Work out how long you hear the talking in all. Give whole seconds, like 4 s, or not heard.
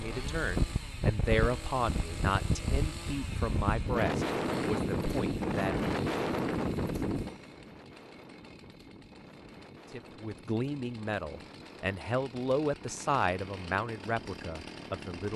11 s.